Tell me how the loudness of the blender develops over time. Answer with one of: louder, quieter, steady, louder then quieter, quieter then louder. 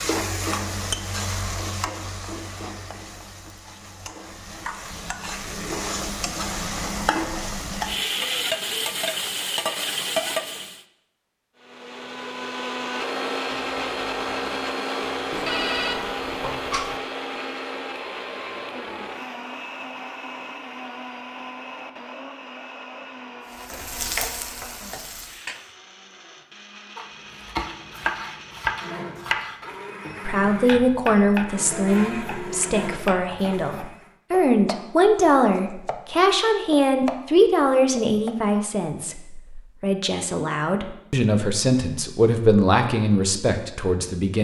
quieter then louder.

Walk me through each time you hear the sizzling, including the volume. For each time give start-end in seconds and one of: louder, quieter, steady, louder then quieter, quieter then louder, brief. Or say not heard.
0.0-10.8 quieter then louder
23.4-25.8 brief.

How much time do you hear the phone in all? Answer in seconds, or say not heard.
2 s.